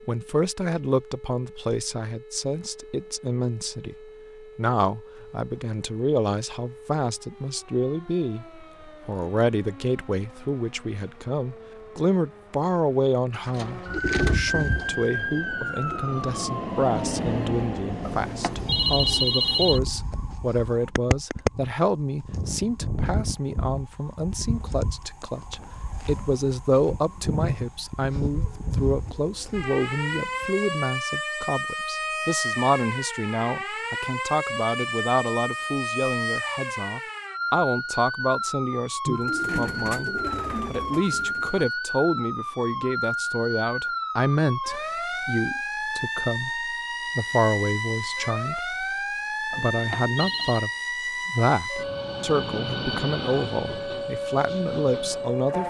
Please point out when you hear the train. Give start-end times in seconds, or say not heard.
14.5-19.8, 51.8-55.6.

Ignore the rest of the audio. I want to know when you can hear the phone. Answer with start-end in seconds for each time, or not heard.
18.0-19.8, 49.5-50.6.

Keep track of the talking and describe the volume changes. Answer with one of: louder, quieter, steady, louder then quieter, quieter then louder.
steady.